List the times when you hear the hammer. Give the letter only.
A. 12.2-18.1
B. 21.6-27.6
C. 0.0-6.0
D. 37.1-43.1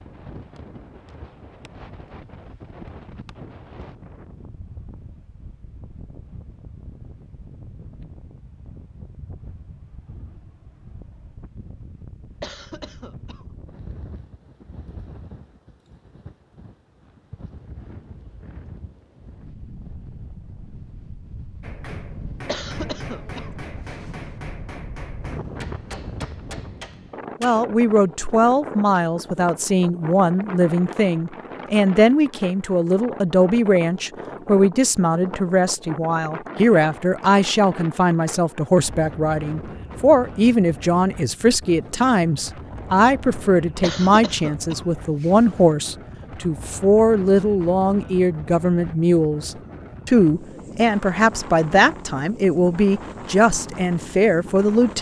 B.